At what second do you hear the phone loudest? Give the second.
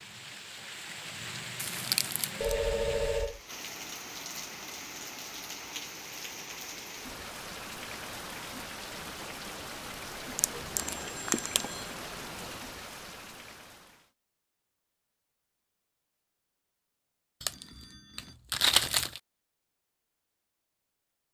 3 s.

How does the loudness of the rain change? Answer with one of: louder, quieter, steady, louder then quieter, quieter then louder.
steady.